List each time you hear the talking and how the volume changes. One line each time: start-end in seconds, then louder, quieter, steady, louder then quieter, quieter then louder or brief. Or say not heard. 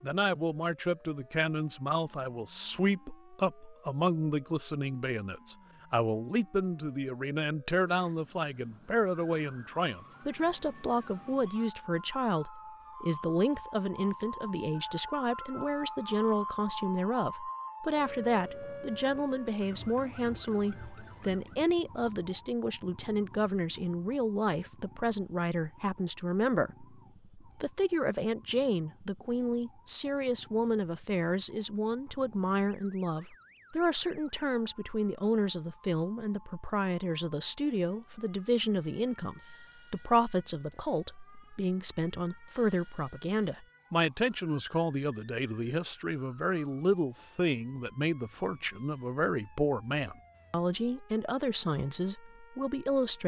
0.0-53.2 steady.